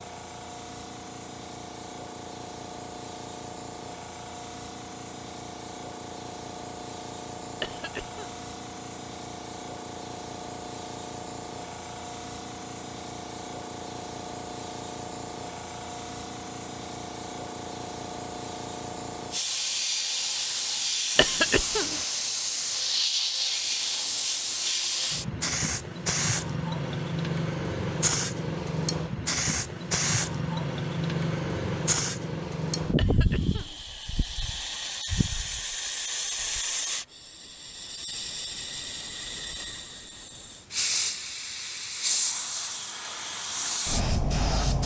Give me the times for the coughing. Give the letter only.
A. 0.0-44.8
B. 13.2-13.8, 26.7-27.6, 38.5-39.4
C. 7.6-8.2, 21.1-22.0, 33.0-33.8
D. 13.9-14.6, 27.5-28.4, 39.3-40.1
C.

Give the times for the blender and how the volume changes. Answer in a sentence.
You can't hear the blender here.